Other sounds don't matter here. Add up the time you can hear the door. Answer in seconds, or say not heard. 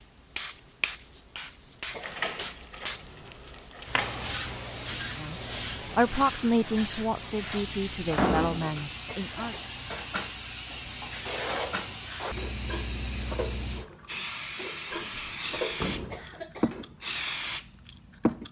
4 s.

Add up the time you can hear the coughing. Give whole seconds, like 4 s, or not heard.
2 s.